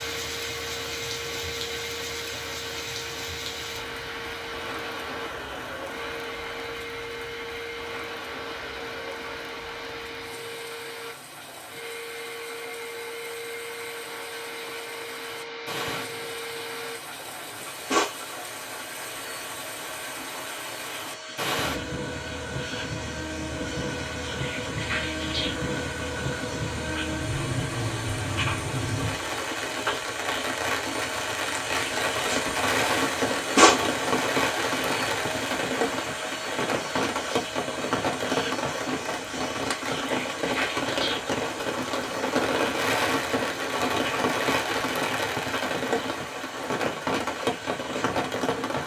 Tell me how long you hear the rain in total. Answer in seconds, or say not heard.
49 s.